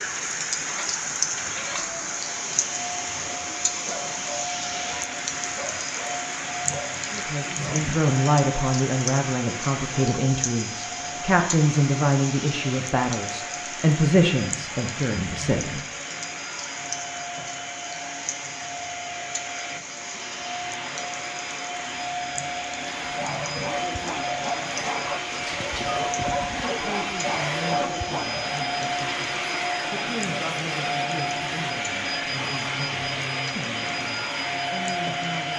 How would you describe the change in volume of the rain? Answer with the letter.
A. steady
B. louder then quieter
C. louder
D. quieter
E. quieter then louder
D.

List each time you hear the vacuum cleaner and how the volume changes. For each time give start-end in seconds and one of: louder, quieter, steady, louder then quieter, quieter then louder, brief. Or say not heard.
0.0-35.5 louder.